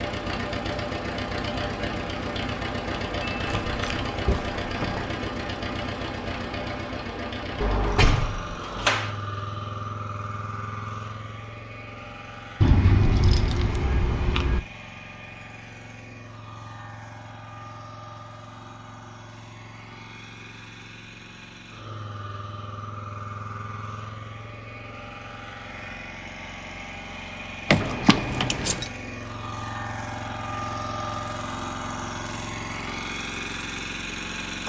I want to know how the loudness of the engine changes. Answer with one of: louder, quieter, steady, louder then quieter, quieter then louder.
quieter then louder.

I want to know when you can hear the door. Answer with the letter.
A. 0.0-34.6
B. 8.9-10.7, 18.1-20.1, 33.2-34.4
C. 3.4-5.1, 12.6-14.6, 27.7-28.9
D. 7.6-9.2
D.